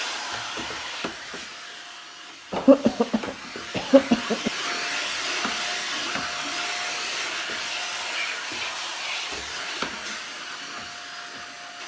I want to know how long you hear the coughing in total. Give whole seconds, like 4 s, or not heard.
2 s.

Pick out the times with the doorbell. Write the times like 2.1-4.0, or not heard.
not heard.